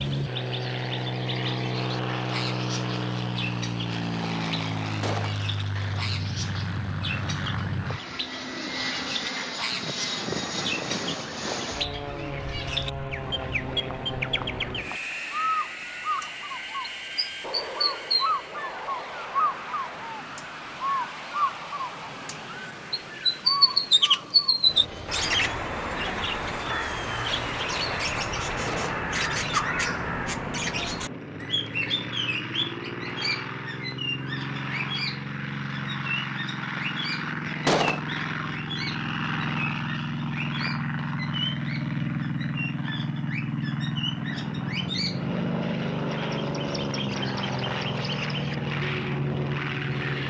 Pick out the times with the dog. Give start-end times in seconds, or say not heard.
not heard.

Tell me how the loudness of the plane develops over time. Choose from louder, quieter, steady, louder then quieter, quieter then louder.
quieter then louder.